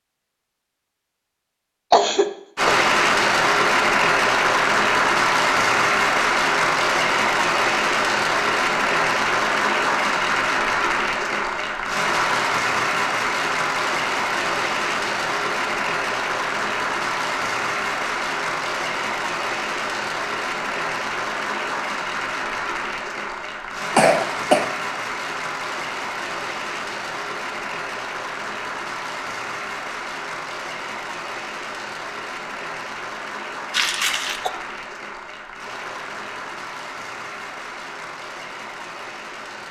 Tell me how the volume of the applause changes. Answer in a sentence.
The loudness of the applause goes down.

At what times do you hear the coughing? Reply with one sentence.
You can hear the coughing from 1.9 to 2.8 s, from 23.9 to 24.8 s and from 33.7 to 34.5 s.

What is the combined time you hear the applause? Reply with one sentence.
The applause can be heard for 37 seconds in total.